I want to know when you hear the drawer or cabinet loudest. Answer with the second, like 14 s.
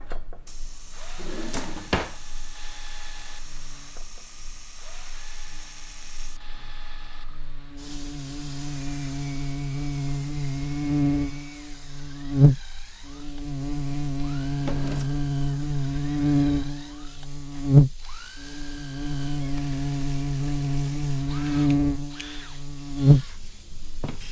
2 s.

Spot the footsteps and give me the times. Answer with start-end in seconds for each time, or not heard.
not heard.